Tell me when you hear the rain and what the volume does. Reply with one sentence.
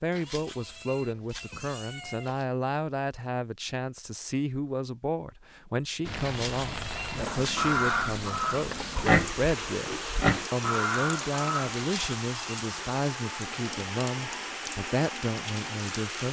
The rain can be heard from 6.0 to 16.2 s, at a steady volume.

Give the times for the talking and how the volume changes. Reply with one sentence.
You can hear the talking from 0.0 to 16.2 s, at a steady volume.